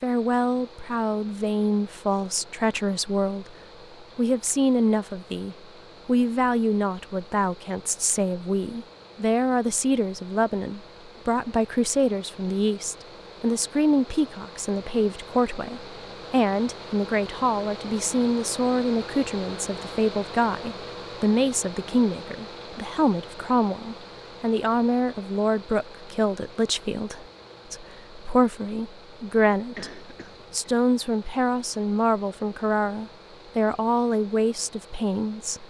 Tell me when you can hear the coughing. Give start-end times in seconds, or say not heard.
29.8-30.6.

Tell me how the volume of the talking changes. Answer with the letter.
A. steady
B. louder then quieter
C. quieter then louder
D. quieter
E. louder
A.